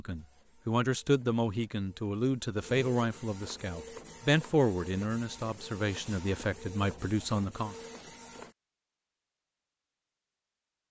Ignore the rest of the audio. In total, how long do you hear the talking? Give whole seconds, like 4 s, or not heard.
8 s.